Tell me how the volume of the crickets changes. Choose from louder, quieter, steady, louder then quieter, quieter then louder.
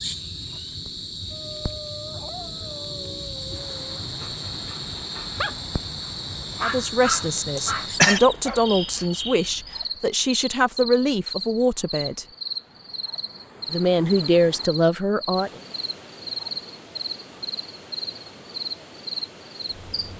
steady.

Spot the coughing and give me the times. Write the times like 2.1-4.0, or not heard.
7.5-8.2.